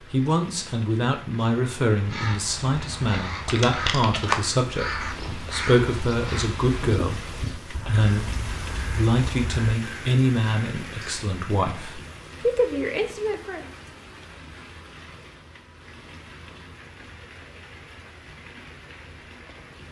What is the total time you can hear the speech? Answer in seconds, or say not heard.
14 s.